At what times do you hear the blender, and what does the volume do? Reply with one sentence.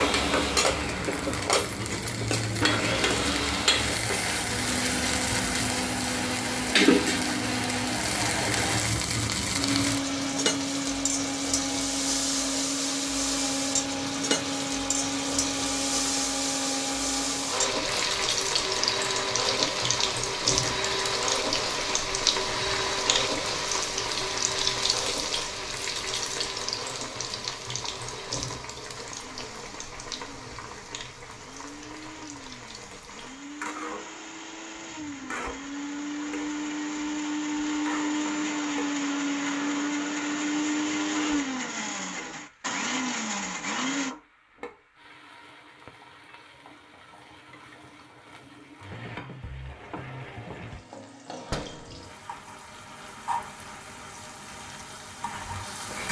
The blender can be heard from 0.0 to 44.1 s, getting quieter then louder.